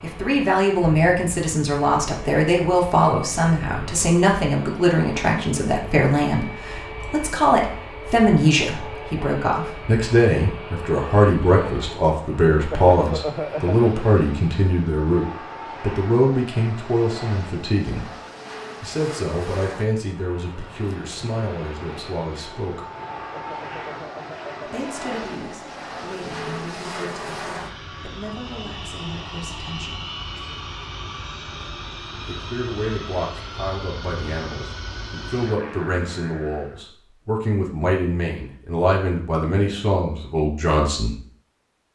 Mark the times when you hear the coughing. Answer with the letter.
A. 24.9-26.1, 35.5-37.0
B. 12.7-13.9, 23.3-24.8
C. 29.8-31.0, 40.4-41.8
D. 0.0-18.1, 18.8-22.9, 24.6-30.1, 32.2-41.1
B.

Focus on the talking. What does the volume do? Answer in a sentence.
The volume of the talking goes down, then up.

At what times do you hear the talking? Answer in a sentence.
The talking can be heard from 0.0 to 18.1 s, from 18.8 to 22.9 s, from 24.6 to 30.1 s and from 32.2 to 41.1 s.